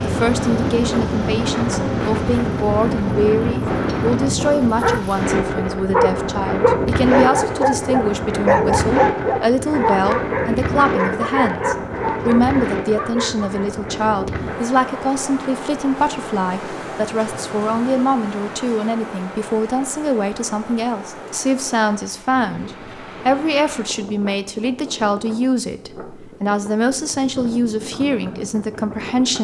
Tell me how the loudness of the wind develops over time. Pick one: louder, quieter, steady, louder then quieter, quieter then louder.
quieter.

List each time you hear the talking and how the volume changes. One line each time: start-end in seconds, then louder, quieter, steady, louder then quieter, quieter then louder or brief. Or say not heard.
0.0-29.3 steady.